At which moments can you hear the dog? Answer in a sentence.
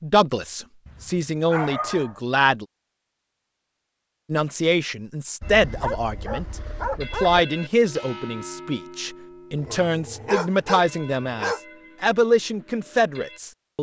You can hear the dog from 0.8 to 2.1 s, from 5.4 to 7.4 s and from 9.6 to 11.6 s.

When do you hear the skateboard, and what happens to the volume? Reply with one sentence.
The skateboard can't be heard in this clip.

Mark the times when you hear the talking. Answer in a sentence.
You can hear the talking from 0.0 to 2.6 s and from 4.3 to 13.7 s.